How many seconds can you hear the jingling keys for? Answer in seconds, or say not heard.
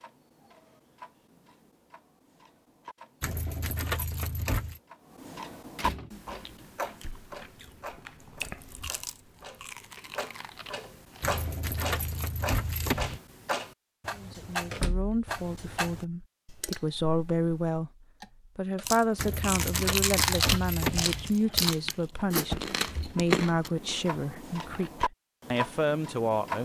6 s.